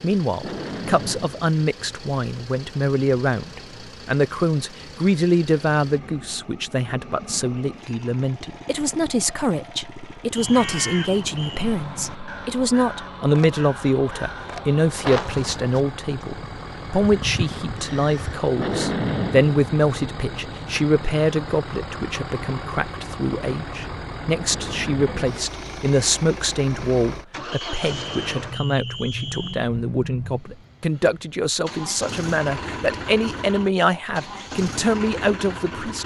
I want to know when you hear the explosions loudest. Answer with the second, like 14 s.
19 s.